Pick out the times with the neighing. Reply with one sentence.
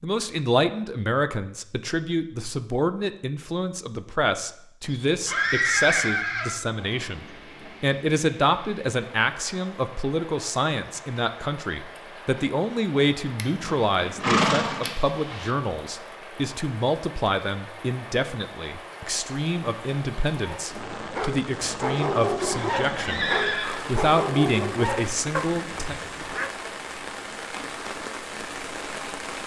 The neighing can be heard from 4.8 to 6.5 s, from 13.6 to 15.5 s and from 22.4 to 23.9 s.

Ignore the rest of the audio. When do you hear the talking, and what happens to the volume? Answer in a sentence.
You can hear the talking from 0.0 to 25.9 s, at a steady volume.